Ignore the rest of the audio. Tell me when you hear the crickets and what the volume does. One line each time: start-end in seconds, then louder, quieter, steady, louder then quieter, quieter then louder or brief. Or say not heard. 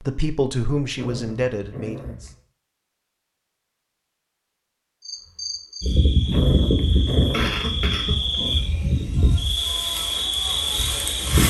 5.0-11.4 steady.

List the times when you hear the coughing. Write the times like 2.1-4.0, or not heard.
7.3-8.3.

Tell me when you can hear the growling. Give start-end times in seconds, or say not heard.
0.9-2.4, 6.2-8.9.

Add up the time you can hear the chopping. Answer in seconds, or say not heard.
not heard.